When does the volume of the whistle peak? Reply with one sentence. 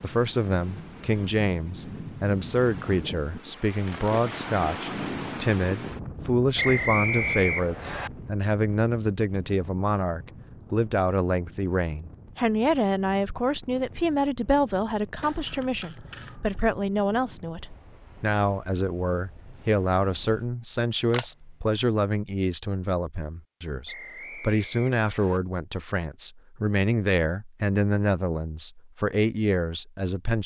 The loudest moment of the whistle is at 7 seconds.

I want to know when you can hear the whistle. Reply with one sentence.
You can hear the whistle from 6.5 to 8.1 s and from 23.9 to 25.4 s.